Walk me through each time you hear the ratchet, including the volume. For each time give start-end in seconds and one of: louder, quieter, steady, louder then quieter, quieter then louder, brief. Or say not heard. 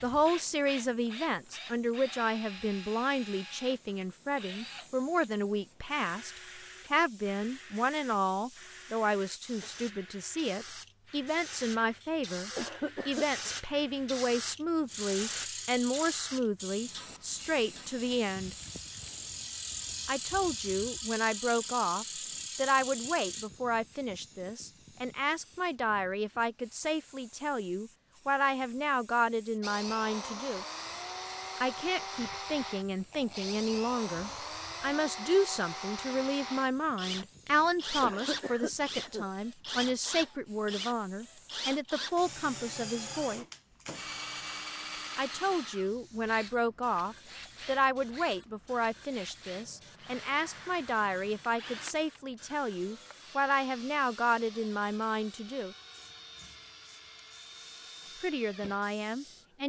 14.8-23.5 quieter then louder.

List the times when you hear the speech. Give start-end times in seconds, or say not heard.
0.0-6.3, 6.9-18.6, 20.1-30.6, 31.6-43.5, 45.1-55.8, 58.2-59.6.